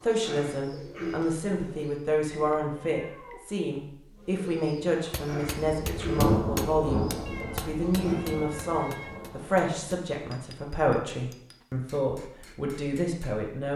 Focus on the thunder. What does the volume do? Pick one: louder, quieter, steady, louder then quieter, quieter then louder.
quieter.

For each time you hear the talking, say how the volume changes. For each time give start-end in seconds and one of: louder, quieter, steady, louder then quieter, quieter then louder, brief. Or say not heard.
0.0-13.7 steady.